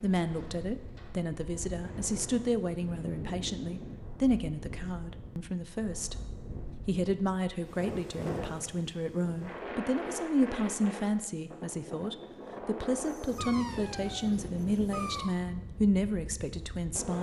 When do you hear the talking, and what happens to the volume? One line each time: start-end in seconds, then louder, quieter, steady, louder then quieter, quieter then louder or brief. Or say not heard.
0.0-17.1 steady.